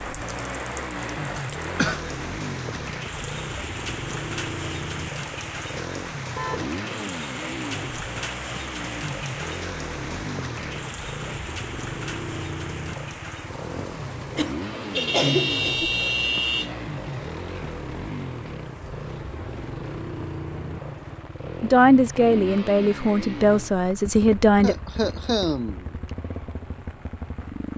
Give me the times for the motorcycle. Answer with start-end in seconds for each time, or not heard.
0.0-27.7.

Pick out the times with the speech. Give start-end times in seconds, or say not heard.
21.6-24.8.